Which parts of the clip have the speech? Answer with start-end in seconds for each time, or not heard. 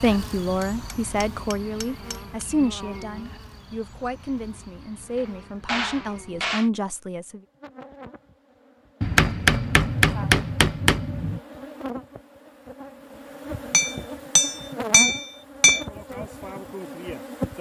0.0-7.4.